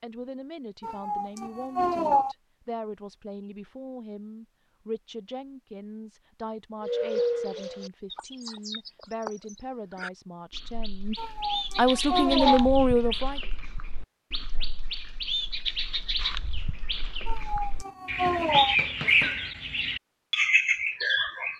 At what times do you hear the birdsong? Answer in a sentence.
You can hear the birdsong from 6.8 to 21.5 s.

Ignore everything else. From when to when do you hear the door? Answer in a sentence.
The door can't be heard in this clip.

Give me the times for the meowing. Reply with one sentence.
You can hear the meowing from 0.8 to 2.4 s, from 11.2 to 12.7 s and from 17.2 to 18.8 s.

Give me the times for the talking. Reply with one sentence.
You can hear the talking from 0.0 to 11.2 s and from 11.8 to 13.4 s.